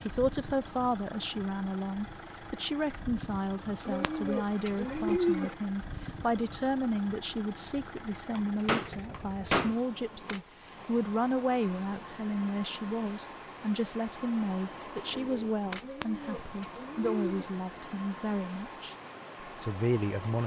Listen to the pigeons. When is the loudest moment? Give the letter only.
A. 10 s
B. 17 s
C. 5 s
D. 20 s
C.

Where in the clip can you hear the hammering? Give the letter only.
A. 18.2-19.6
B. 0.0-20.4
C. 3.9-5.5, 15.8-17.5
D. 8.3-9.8
D.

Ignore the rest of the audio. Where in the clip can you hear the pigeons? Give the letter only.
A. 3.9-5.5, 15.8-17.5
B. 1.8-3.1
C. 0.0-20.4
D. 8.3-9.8
A.